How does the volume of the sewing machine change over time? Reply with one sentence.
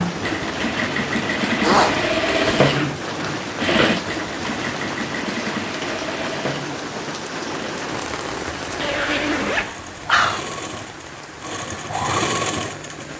The volume of the sewing machine goes down, then up.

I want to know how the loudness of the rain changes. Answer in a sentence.
The volume of the rain goes down.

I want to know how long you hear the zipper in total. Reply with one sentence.
You can hear the zipper for 3 seconds altogether.